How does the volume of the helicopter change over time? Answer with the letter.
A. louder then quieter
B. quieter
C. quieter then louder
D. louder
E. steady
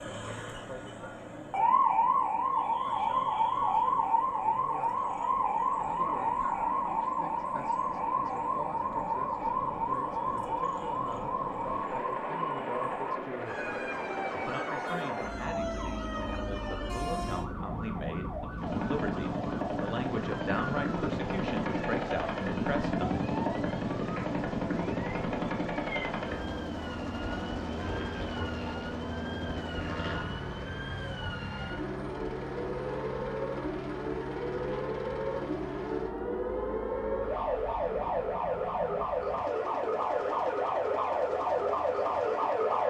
A.